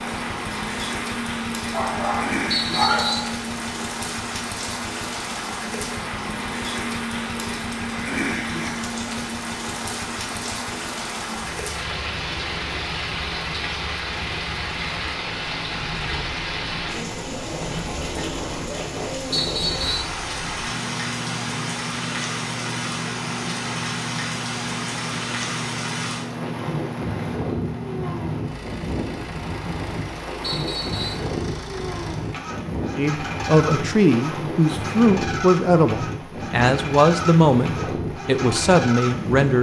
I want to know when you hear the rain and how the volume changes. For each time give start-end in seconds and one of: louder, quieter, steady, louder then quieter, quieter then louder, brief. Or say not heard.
0.0-39.5 steady.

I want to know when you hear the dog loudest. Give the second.
3 s.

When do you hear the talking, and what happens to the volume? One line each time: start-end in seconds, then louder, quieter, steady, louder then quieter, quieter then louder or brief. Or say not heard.
33.0-39.5 steady.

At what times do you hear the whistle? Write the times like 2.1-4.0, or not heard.
2.5-3.3, 19.3-20.1, 30.4-31.2.